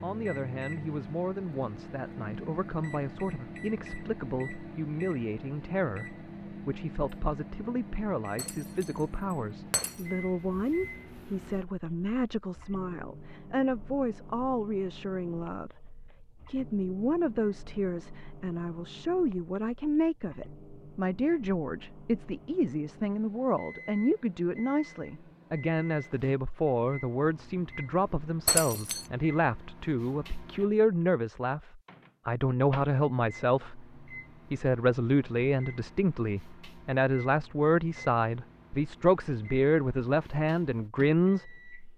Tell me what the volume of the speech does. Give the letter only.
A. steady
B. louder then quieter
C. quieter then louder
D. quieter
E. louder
E.